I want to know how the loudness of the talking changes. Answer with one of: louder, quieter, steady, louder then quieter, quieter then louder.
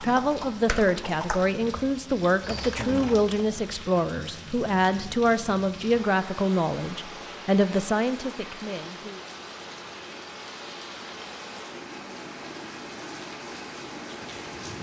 steady.